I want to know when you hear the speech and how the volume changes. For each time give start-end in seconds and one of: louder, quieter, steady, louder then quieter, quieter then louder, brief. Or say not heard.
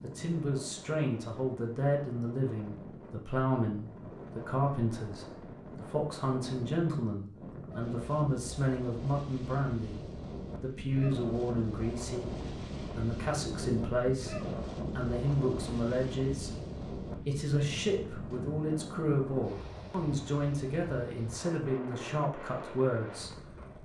0.0-23.8 steady.